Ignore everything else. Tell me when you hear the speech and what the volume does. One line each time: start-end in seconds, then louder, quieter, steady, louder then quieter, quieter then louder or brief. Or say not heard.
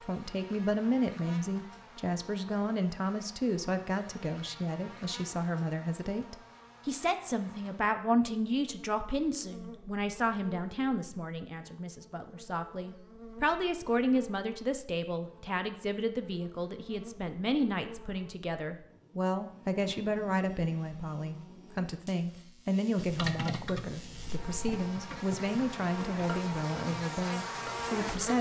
0.0-28.3 steady.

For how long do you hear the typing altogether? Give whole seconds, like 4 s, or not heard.
5 s.